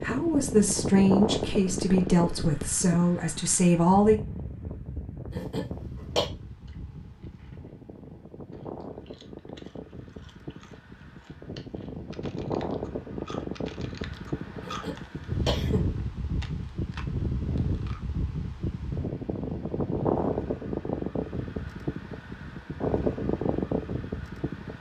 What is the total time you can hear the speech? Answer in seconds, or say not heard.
4 s.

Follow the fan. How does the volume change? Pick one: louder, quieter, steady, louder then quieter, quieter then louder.
quieter then louder.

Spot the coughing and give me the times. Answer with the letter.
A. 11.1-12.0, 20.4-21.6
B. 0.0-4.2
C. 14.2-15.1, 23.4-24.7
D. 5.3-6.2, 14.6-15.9
D.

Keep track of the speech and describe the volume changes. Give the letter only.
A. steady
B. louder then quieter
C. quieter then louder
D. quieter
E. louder
A.